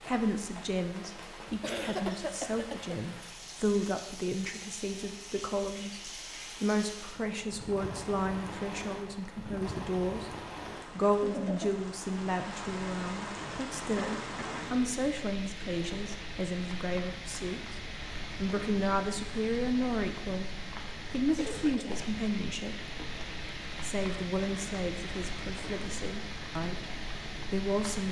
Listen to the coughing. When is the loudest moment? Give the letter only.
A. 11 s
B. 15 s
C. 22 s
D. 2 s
D.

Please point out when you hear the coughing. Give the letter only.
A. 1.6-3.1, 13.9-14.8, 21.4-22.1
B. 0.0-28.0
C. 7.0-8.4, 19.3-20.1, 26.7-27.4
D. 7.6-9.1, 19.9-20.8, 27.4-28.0
A.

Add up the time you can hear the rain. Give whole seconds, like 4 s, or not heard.
28 s.